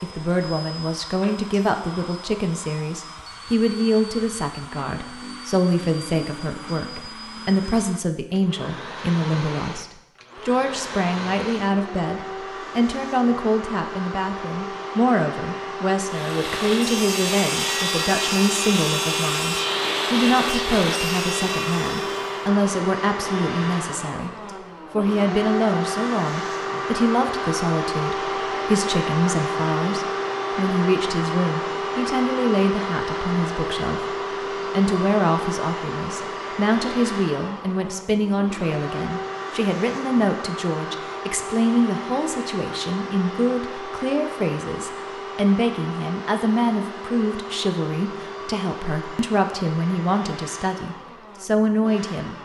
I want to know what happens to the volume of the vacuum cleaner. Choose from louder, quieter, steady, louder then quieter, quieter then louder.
louder then quieter.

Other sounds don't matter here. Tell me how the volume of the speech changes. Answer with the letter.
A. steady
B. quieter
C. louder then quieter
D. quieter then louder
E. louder
A.